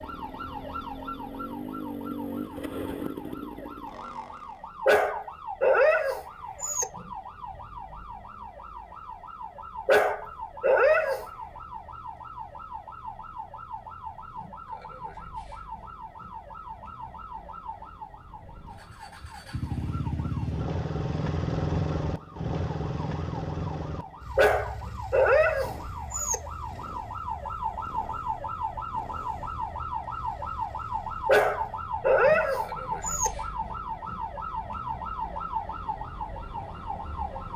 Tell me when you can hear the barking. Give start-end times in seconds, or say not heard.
4.8-6.8, 9.8-11.2, 24.4-26.4, 31.2-33.3.